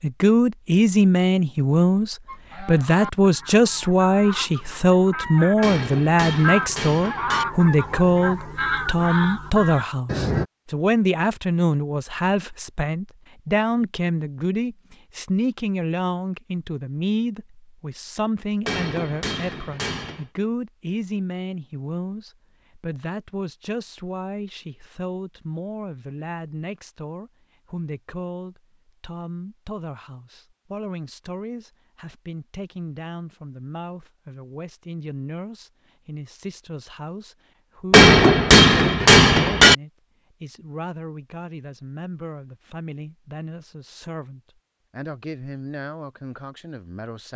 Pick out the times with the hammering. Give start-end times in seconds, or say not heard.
5.6-7.5, 18.6-20.2, 37.9-39.8.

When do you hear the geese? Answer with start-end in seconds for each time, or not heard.
2.2-10.4.